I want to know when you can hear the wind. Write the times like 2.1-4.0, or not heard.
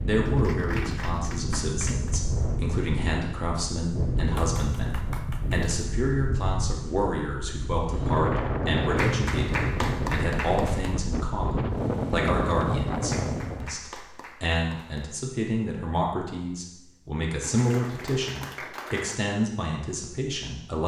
0.0-13.8.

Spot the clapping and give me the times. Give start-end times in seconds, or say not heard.
0.2-2.2, 4.3-5.7, 8.9-10.9, 13.1-15.1, 17.4-19.2.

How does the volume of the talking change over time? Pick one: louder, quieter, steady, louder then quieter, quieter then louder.
steady.